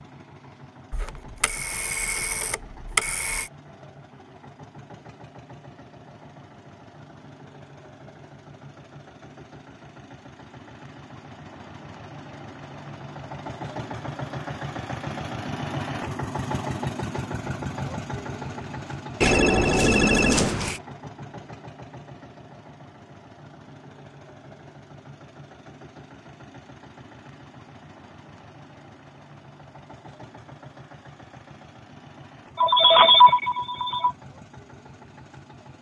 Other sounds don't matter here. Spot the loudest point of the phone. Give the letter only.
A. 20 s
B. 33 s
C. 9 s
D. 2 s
B.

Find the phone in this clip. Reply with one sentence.
The phone can be heard from 0.9 to 3.5 s, from 19.2 to 20.8 s and from 32.5 to 34.1 s.